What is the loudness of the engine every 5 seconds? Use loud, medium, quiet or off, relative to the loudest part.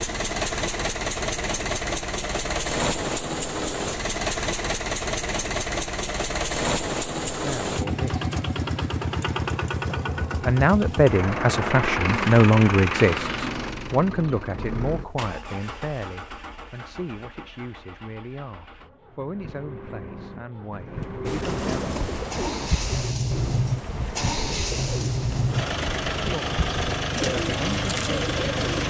loud, loud, loud, quiet, loud, loud.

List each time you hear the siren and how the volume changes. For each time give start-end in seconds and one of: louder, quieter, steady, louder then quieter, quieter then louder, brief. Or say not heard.
not heard.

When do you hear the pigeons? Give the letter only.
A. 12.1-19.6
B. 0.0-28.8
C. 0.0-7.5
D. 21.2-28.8
D.